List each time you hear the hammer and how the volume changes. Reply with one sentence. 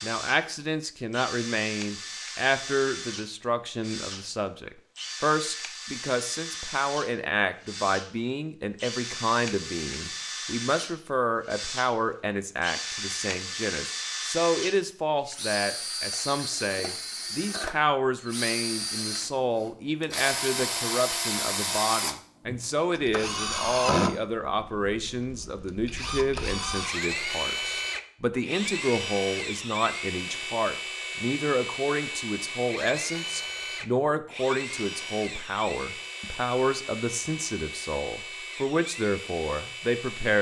You can't hear the hammer here.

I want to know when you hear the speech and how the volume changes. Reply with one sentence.
The speech can be heard from 0.0 to 40.3 s, at a steady volume.